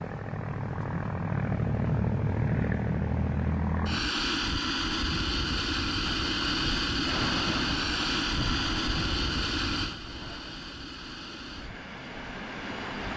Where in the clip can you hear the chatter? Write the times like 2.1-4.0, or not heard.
not heard.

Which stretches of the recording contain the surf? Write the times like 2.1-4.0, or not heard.
6.2-13.1.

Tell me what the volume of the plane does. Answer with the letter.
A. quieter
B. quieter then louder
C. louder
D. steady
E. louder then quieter
A.